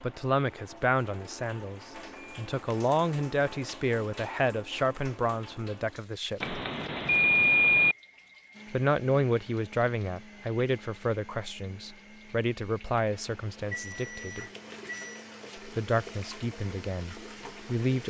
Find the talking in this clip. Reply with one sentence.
You can hear the talking from 0.0 to 6.6 s, from 8.7 to 14.4 s and from 15.7 to 18.0 s.